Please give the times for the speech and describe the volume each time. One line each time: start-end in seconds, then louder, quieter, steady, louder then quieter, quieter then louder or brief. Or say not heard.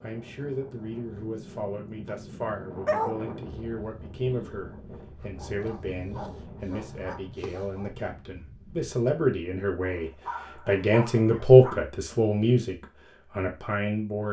0.0-14.2 louder.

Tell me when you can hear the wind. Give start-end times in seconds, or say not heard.
0.0-8.9.